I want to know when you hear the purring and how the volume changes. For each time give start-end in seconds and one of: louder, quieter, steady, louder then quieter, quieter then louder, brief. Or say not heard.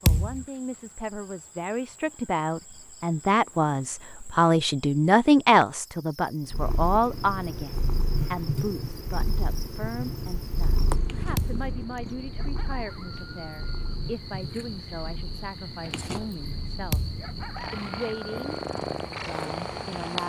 6.5-20.2 quieter then louder.